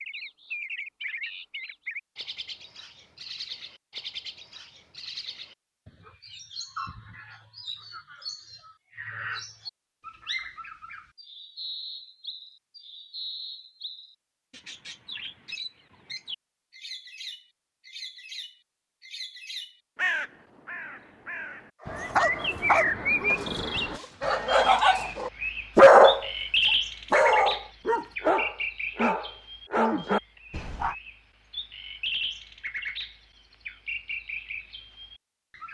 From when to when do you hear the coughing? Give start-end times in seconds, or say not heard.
not heard.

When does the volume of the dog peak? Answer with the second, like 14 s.
26 s.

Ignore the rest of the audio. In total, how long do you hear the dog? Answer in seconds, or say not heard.
9 s.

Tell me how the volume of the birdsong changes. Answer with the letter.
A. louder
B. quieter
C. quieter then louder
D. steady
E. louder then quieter
E.